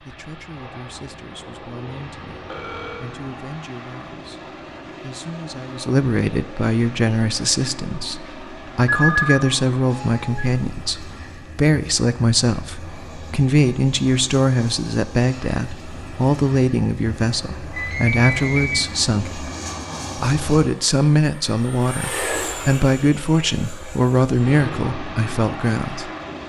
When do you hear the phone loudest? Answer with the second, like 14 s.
9 s.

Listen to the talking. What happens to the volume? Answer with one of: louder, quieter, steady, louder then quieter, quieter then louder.
louder.